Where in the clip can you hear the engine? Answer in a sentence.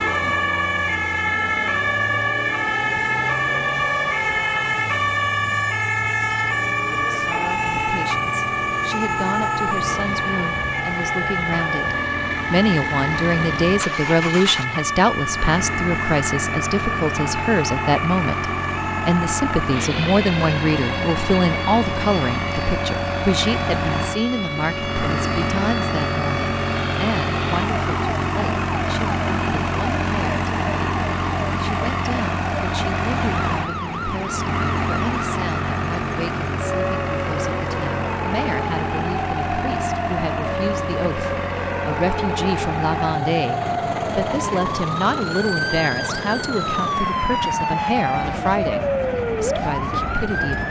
The engine can be heard from 0.0 to 50.6 s.